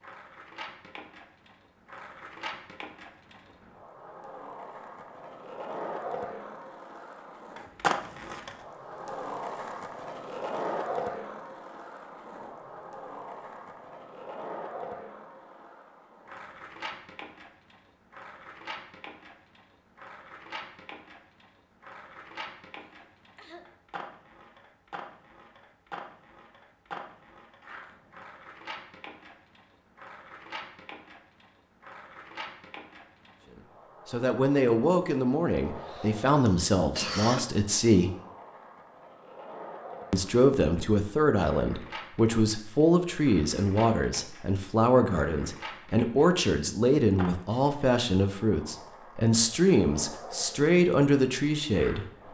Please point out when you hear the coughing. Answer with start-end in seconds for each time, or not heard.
22.8-23.6, 35.8-37.5.